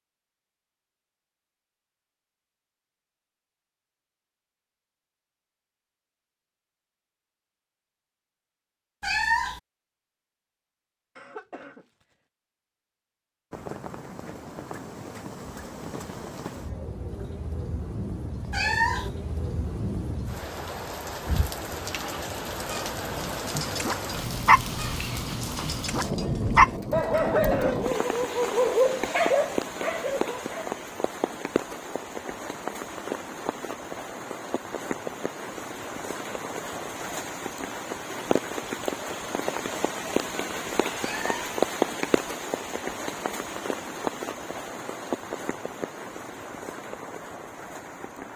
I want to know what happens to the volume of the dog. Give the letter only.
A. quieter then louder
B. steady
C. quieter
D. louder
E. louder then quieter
D.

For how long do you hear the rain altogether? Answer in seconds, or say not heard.
35 s.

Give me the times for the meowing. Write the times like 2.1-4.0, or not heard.
9.0-9.6, 18.5-19.1, 41.0-41.5.